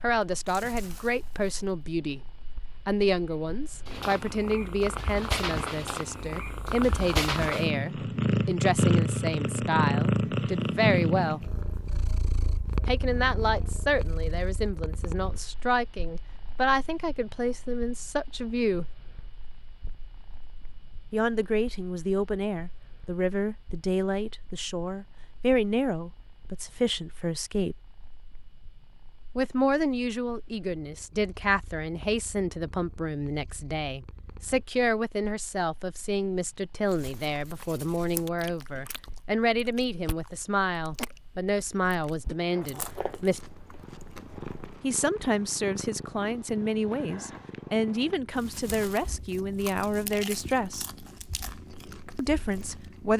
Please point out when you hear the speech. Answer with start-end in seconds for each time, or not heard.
0.0-11.4, 12.8-18.9, 21.1-27.8, 29.4-43.5, 44.8-50.9, 52.1-53.1.